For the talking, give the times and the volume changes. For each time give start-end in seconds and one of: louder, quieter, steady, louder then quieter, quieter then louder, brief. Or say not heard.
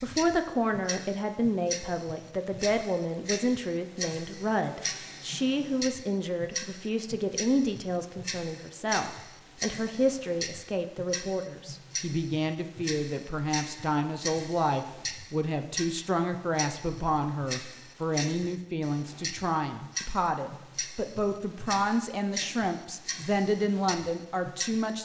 0.0-25.0 steady.